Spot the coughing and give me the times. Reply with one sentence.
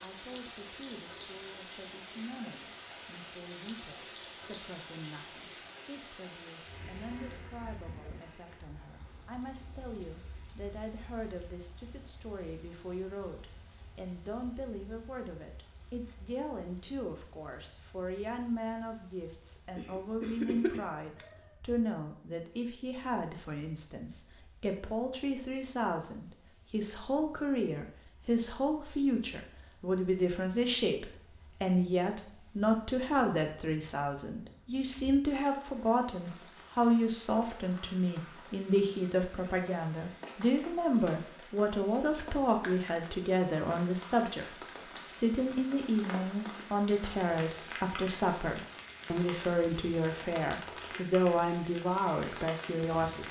You can hear the coughing from 19.8 to 21.5 s.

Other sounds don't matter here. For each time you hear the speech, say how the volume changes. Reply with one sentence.
The speech can be heard from 0.0 to 53.2 s, getting louder.